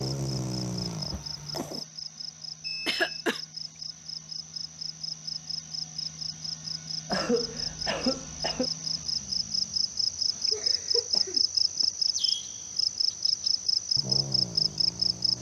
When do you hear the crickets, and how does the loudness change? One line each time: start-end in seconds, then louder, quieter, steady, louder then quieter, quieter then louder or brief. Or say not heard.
0.0-15.3 louder.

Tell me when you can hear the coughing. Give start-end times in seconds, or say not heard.
2.9-3.4, 7.1-8.7, 10.5-11.4.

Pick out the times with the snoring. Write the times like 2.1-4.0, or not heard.
0.0-1.9, 13.7-15.3.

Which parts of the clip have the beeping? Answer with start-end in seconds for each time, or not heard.
2.6-3.2.